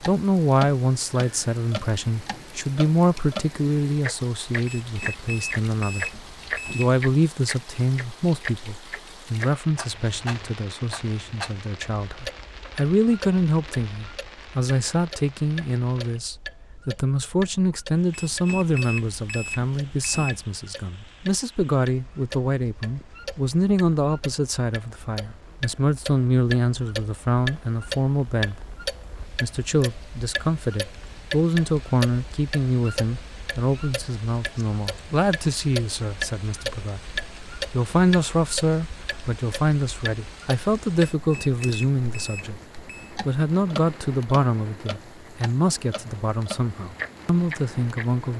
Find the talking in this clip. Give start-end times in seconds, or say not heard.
0.0-28.7, 29.4-48.3.